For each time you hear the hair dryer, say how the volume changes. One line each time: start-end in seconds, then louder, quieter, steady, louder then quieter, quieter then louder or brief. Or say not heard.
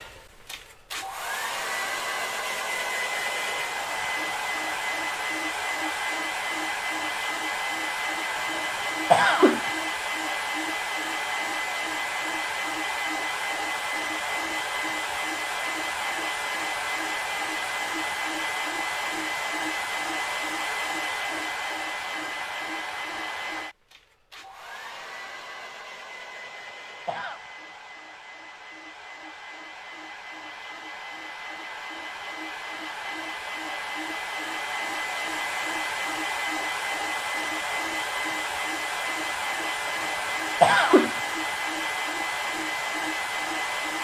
0.0-43.9 quieter then louder.